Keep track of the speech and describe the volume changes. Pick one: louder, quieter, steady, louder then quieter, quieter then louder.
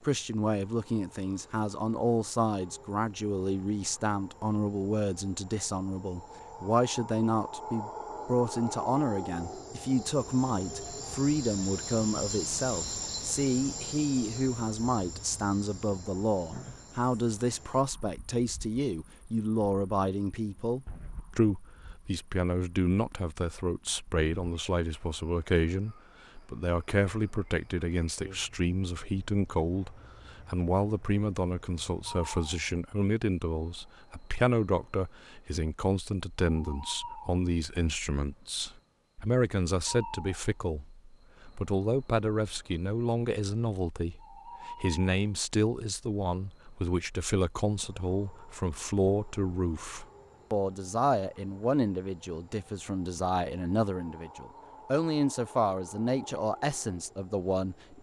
steady.